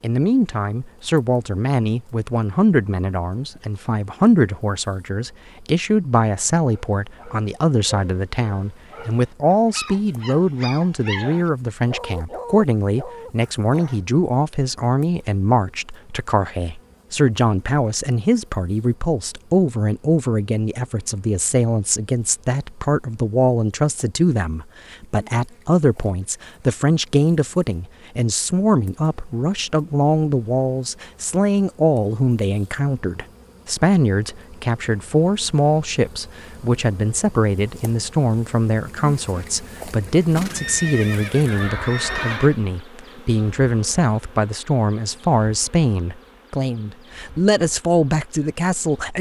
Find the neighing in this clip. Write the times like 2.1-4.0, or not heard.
40.4-42.5.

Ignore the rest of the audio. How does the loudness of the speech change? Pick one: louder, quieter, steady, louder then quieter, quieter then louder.
steady.